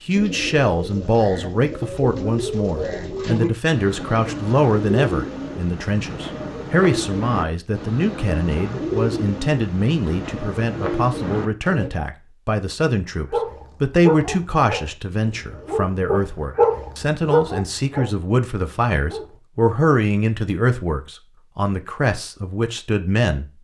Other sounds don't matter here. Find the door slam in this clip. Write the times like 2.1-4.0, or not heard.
not heard.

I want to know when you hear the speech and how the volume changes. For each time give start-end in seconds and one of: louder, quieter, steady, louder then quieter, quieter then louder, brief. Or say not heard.
0.0-23.4 steady.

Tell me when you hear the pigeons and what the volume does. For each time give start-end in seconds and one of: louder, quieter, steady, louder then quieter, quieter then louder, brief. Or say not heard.
0.1-11.9 steady.